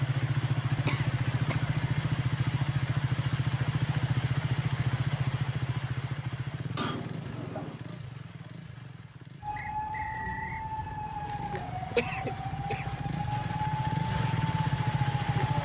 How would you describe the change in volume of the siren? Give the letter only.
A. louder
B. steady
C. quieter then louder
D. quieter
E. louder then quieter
B.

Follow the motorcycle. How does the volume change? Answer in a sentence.
The loudness of the motorcycle goes down, then up.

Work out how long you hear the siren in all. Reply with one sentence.
You can hear the siren for 6 seconds altogether.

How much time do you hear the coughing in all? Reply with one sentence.
The coughing can be heard for 3 seconds in total.